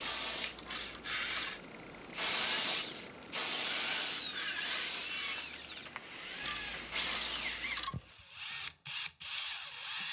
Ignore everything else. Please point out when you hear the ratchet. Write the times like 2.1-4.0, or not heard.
0.0-1.5, 6.4-8.1.